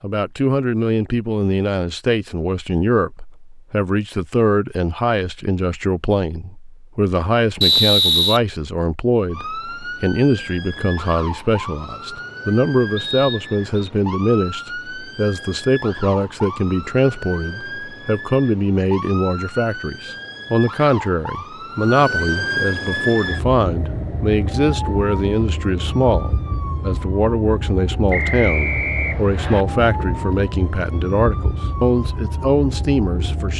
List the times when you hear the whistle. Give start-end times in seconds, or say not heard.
7.6-8.4, 12.9-13.9, 28.1-29.6.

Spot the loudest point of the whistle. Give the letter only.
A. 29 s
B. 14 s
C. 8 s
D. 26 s
C.